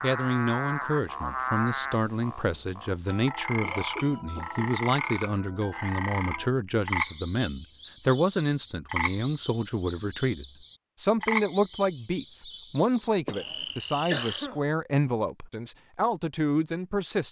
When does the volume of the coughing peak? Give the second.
14 s.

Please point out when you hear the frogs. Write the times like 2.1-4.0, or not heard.
0.0-14.3.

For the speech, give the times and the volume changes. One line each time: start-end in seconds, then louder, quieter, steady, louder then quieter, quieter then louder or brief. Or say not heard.
0.0-17.2 steady.